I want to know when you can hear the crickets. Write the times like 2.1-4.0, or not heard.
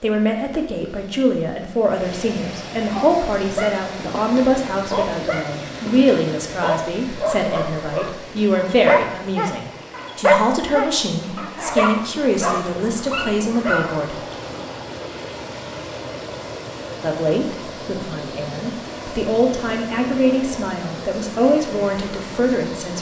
not heard.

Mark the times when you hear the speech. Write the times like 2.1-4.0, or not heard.
0.0-14.2, 17.0-22.9.